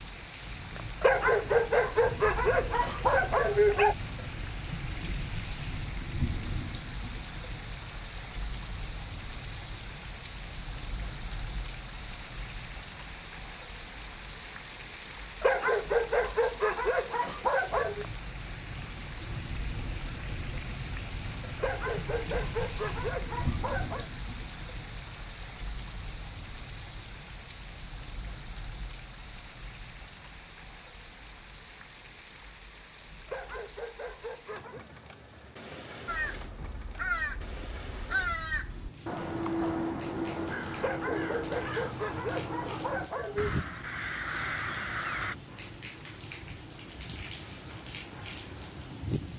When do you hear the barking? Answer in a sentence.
You can hear the barking from 1.0 to 4.0 s, from 15.4 to 18.1 s, from 21.6 to 24.1 s, from 33.2 to 34.9 s and from 40.8 to 43.5 s.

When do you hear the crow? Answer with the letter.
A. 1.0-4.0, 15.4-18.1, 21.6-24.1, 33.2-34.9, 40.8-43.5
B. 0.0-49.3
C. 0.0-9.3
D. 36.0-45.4
D.